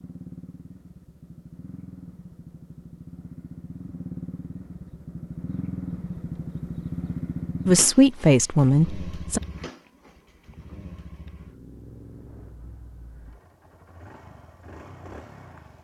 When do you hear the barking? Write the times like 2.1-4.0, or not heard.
not heard.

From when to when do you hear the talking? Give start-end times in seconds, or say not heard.
7.7-9.4.